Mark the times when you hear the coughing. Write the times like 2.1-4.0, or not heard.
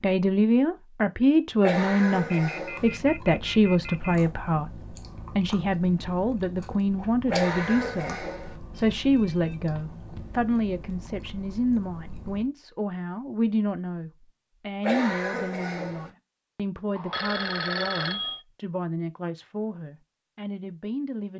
1.6-2.9, 7.2-8.6, 14.8-16.1.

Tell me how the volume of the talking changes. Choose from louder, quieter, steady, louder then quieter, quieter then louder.
quieter.